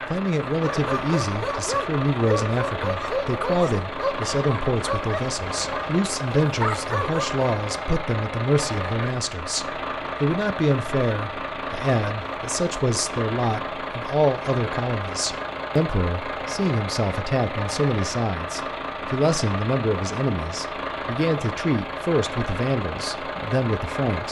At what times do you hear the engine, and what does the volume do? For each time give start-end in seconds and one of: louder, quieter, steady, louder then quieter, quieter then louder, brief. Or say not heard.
0.0-24.2 steady.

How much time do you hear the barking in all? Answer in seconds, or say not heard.
7 s.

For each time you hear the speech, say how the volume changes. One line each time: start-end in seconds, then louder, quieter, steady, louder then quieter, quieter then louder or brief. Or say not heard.
0.1-24.2 steady.